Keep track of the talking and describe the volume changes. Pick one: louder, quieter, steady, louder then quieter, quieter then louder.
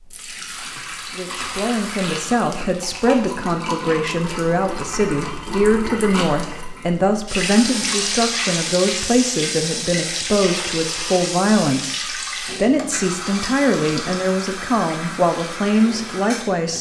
steady.